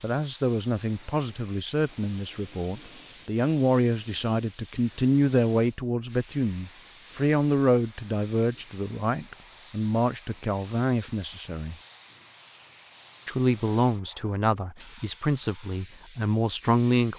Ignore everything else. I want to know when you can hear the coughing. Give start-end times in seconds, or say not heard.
not heard.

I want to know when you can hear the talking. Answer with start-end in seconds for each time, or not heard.
0.0-11.8, 13.2-17.1.